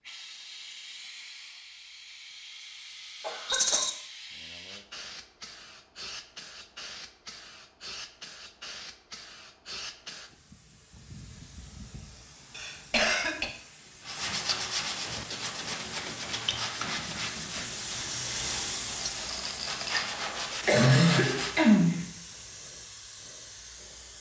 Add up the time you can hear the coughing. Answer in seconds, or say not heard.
3 s.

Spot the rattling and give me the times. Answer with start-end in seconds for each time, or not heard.
3.5-3.9, 19.1-20.1.